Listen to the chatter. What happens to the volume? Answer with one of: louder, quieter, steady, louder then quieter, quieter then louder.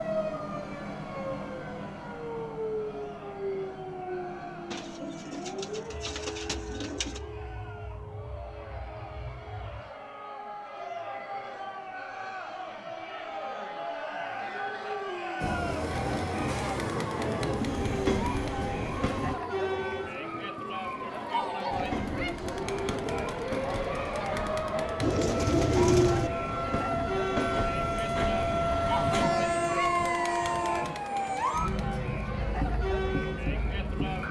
louder.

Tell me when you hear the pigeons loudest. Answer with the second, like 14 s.
26 s.